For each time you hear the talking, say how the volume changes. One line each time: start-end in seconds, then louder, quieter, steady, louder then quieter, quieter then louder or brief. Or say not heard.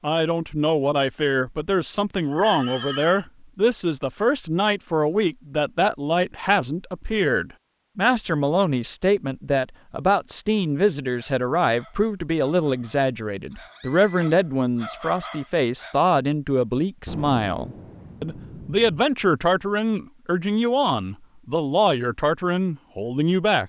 0.0-23.6 steady.